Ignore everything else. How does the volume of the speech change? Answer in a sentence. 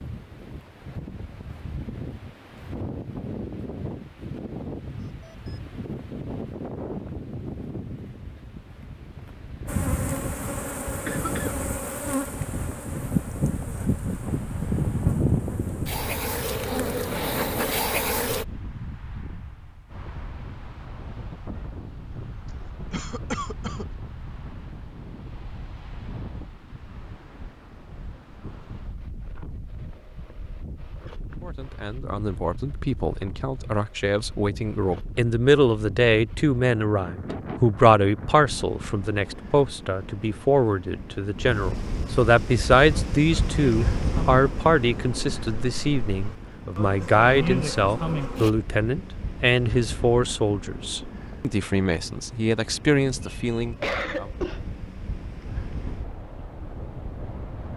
The volume of the speech stays about the same.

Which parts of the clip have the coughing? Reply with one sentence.
The coughing can be heard from 11.1 to 11.6 s, from 22.9 to 23.9 s and from 53.2 to 54.6 s.